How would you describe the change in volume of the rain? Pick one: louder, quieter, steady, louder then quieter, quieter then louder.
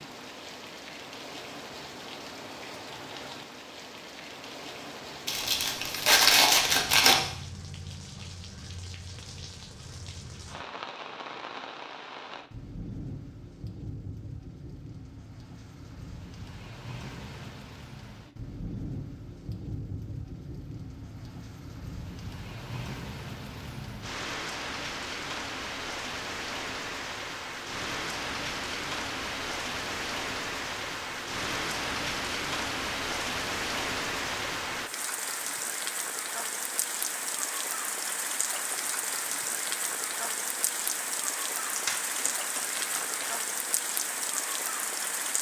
louder.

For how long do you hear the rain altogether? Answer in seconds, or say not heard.
45 s.